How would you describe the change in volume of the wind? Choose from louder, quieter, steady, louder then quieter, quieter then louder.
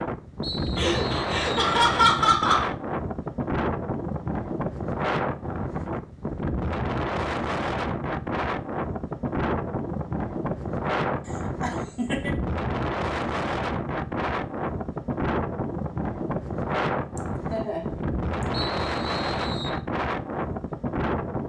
steady.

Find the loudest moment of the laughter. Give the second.
2 s.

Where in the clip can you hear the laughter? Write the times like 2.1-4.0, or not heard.
0.8-2.7, 11.2-12.3, 17.1-18.4.